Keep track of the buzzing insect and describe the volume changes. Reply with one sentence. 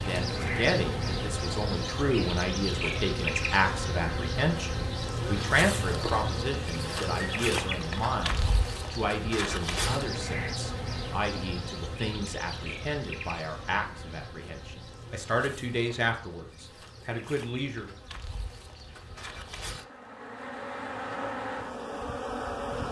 The volume of the buzzing insect goes down, then up.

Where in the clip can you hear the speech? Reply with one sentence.
You can hear the speech from 0.0 to 17.9 s.